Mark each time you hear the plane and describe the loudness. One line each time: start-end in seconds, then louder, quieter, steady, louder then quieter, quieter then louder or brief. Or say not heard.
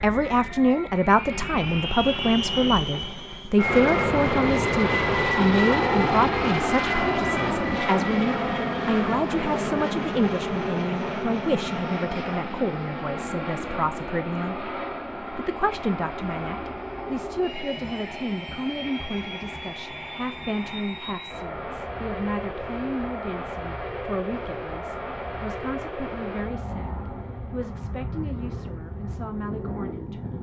0.0-30.3 quieter.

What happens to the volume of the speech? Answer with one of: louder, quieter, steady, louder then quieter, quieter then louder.
quieter.